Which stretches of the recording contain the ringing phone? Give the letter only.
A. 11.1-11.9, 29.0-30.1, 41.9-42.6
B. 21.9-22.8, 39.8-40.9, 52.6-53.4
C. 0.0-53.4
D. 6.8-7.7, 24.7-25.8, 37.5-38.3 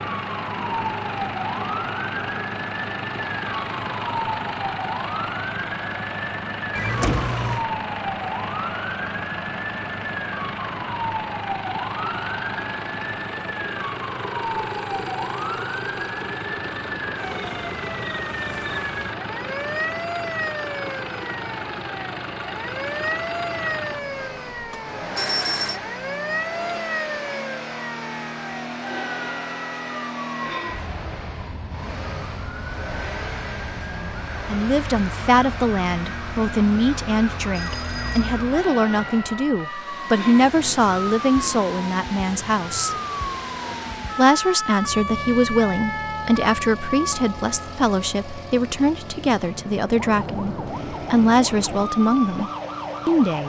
D.